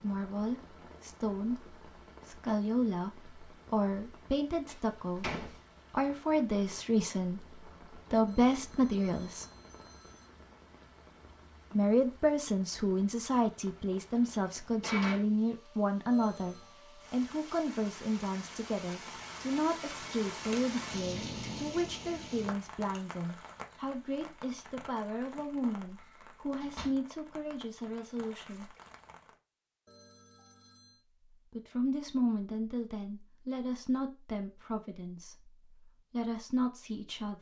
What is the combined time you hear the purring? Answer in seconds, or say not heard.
not heard.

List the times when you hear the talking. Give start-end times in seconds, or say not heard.
0.0-9.4, 11.7-28.7, 31.5-37.3.